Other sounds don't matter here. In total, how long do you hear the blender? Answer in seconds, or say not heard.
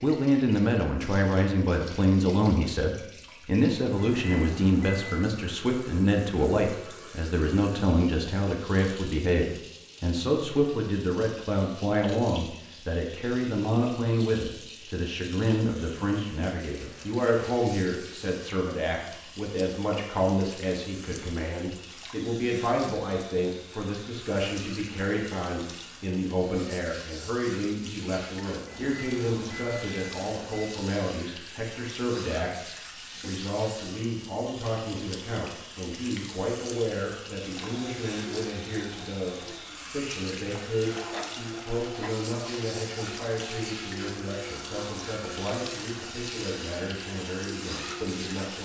11 s.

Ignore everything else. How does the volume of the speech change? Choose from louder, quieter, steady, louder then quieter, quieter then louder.
quieter.